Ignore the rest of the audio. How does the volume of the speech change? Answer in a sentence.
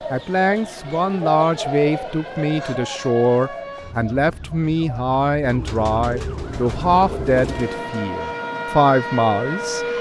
The loudness of the speech stays about the same.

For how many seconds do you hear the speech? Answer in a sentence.
The speech can be heard for 10 seconds in total.